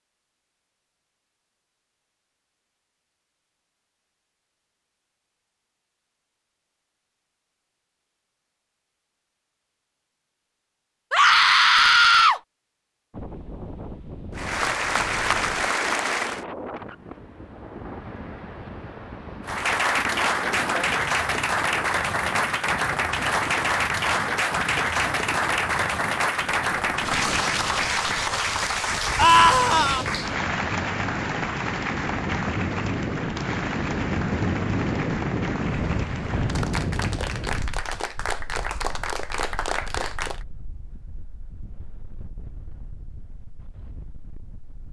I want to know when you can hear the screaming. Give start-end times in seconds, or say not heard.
11.1-12.4, 29.1-30.1.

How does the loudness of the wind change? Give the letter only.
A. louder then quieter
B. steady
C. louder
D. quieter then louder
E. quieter
A.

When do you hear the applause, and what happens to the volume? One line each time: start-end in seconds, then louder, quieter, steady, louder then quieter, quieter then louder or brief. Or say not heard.
14.3-16.4 brief
19.4-40.5 quieter.